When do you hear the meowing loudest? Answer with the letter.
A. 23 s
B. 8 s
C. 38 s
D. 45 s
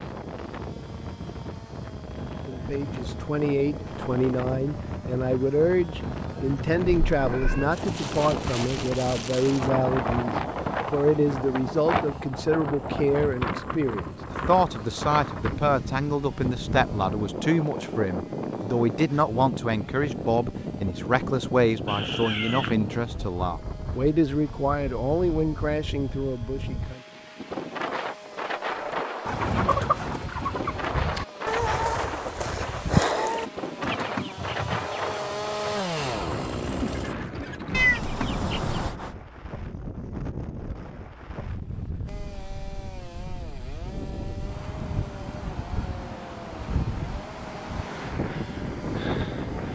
C.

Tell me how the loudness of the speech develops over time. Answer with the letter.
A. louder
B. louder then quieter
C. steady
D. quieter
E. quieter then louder
C.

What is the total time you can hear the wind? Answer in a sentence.
The wind can be heard for 50 seconds in total.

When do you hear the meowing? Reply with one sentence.
You can hear the meowing from 7.1 to 7.7 s, from 21.9 to 22.8 s and from 37.7 to 39.1 s.